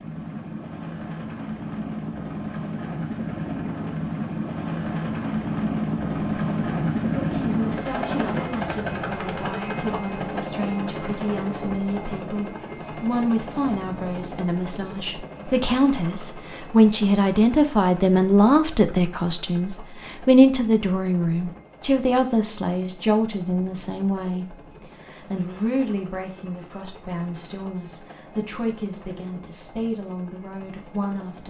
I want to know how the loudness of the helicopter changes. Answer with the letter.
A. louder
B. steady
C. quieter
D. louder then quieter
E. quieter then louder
C.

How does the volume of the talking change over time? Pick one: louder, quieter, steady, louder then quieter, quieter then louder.
louder then quieter.